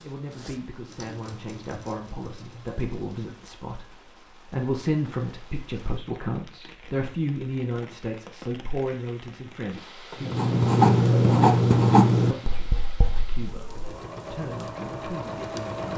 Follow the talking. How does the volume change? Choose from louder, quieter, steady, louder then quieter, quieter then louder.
louder then quieter.